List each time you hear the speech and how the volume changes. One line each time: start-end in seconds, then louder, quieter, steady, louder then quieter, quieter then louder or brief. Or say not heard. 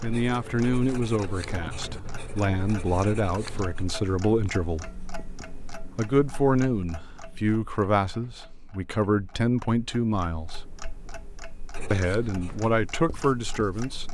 0.0-5.0 quieter then louder
6.0-10.6 steady
11.9-14.0 brief.